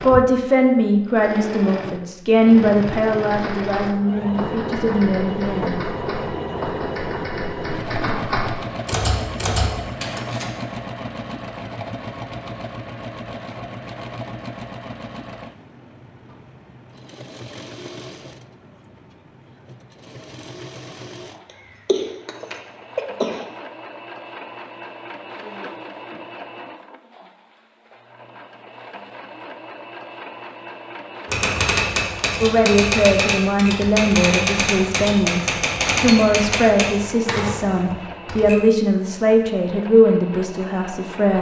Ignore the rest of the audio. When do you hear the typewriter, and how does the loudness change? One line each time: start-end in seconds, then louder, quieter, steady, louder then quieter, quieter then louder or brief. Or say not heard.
3.2-10.5 louder
31.2-38.6 quieter.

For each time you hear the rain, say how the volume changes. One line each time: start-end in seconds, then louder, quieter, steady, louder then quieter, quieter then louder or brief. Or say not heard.
not heard.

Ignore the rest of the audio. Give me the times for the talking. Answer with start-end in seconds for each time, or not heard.
0.0-5.8, 32.4-41.3.